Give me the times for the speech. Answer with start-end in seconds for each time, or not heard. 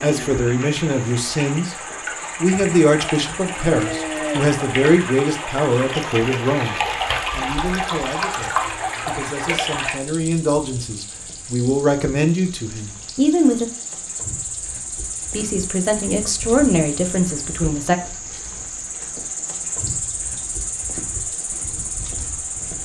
0.0-13.7, 15.3-18.0.